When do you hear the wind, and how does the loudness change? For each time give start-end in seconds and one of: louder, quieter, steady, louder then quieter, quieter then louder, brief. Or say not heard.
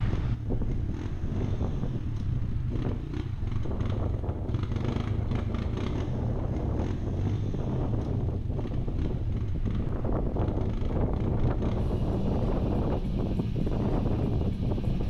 0.0-15.0 louder.